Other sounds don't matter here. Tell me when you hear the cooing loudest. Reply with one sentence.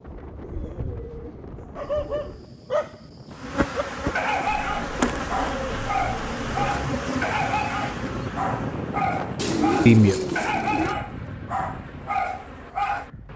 The volume of the cooing peaks at 10 seconds.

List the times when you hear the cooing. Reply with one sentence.
The cooing can be heard from 0.1 to 2.5 s, from 4.5 to 6.8 s and from 9.3 to 10.9 s.